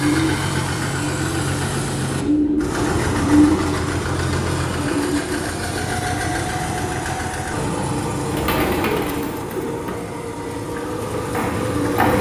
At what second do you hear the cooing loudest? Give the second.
3 s.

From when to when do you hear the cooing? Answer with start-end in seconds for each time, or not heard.
0.0-3.7, 8.2-12.1.